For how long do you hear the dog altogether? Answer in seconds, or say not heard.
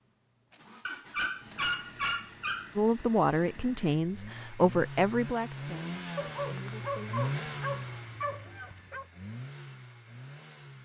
5 s.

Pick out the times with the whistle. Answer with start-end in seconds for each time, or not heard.
not heard.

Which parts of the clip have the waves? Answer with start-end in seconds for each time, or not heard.
not heard.